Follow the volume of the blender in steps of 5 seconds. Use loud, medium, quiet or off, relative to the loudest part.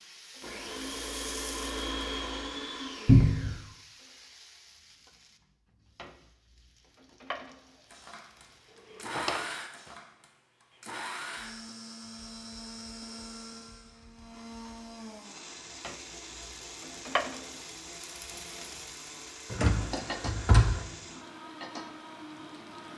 loud, loud, medium, medium, medium.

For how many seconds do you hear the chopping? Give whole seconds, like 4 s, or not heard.
not heard.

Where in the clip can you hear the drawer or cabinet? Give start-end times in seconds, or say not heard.
3.0-3.6, 9.0-9.4, 19.5-20.8.